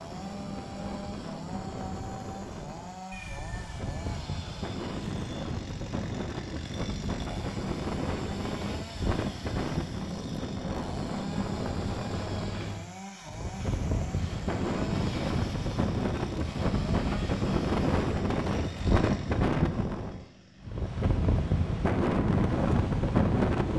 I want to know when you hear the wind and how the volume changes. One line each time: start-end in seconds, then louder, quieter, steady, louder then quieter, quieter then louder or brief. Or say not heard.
0.0-23.7 louder.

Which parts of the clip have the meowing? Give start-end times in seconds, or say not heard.
3.1-4.1, 12.1-12.8.